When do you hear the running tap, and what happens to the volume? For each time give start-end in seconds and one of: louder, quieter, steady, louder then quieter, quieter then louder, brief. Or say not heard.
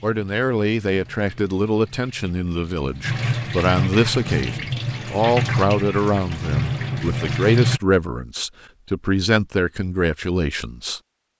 0.0-7.8 louder.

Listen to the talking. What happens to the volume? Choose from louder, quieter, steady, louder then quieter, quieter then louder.
steady.